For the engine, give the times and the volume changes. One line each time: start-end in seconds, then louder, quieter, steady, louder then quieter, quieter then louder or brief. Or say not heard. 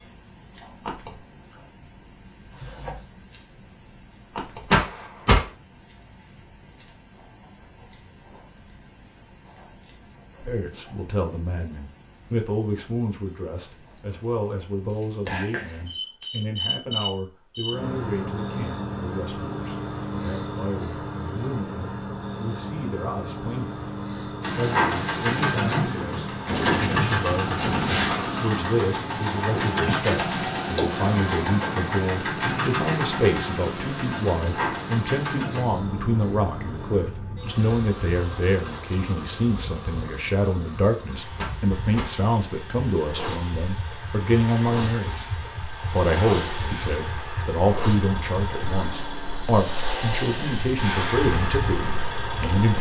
24.4-52.7 quieter then louder.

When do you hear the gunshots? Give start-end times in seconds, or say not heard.
4.7-5.5, 26.4-28.4, 41.4-42.1.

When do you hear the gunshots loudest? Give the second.
5 s.